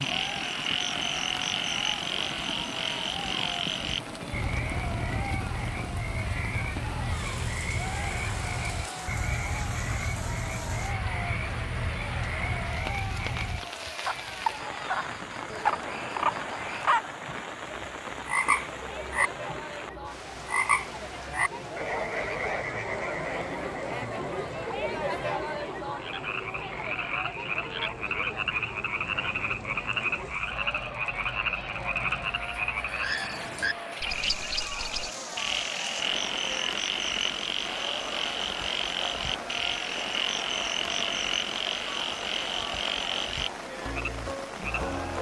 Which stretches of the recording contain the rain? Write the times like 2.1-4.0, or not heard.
0.0-45.1.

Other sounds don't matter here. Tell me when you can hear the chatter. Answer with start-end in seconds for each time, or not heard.
0.1-45.1.